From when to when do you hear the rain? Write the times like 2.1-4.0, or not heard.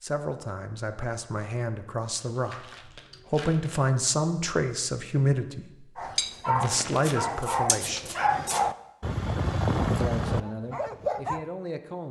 not heard.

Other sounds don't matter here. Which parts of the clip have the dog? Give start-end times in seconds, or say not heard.
6.0-11.4.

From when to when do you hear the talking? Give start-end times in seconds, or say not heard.
0.0-8.1, 10.0-12.0.